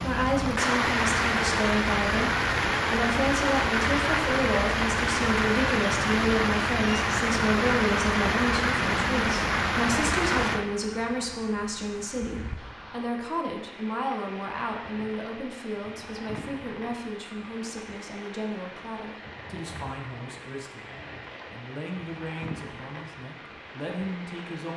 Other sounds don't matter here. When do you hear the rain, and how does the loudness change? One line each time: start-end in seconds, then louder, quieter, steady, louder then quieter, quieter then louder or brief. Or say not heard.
0.0-24.7 quieter.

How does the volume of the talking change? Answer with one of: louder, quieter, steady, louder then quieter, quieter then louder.
quieter.